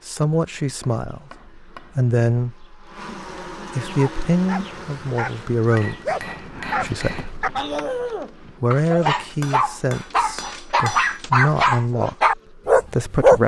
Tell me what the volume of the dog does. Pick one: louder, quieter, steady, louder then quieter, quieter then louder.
louder.